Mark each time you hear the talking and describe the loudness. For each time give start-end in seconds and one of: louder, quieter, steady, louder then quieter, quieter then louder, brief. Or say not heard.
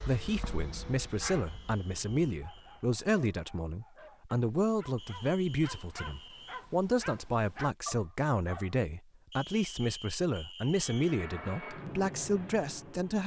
0.0-13.2 steady.